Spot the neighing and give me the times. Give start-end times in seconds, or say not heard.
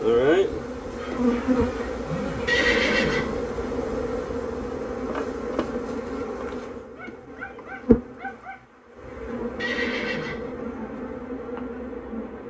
2.5-3.4, 9.6-10.6.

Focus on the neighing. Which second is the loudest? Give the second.
3 s.